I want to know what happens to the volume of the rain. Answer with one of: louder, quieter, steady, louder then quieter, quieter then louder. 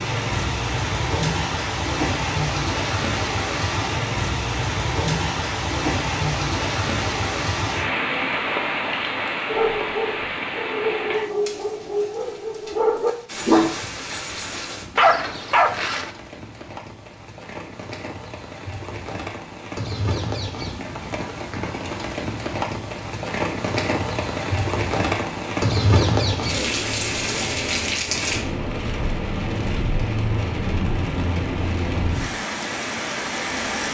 quieter then louder.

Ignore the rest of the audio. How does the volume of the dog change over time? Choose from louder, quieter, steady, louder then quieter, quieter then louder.
louder.